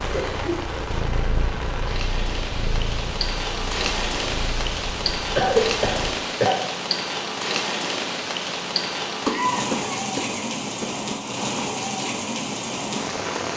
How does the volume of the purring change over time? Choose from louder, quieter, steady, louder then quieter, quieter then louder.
quieter.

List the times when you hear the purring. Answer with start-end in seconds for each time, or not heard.
0.0-6.1.